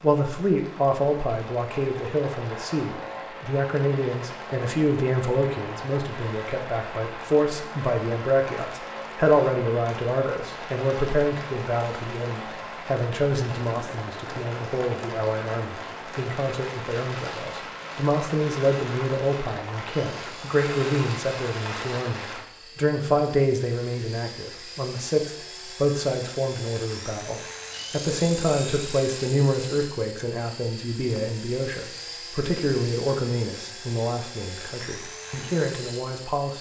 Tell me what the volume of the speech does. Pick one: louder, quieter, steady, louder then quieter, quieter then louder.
steady.